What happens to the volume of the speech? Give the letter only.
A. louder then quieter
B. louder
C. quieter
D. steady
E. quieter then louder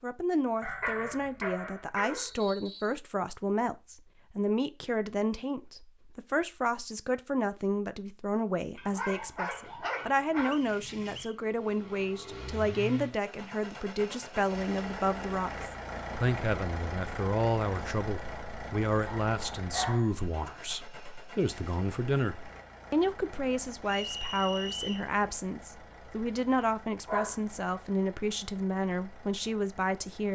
D.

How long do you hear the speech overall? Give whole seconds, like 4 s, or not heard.
30 s.